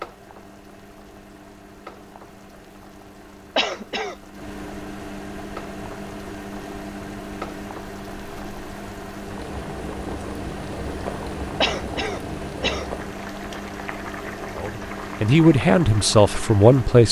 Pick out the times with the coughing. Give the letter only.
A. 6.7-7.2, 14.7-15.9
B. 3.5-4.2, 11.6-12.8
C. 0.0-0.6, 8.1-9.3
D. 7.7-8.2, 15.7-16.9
B.